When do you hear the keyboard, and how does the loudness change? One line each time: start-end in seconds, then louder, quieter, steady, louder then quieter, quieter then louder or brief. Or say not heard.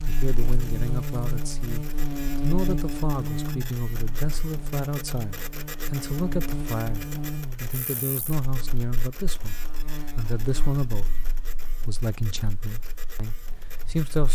not heard.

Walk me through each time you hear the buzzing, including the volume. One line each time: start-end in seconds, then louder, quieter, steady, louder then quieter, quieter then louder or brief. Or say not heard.
0.0-14.3 quieter.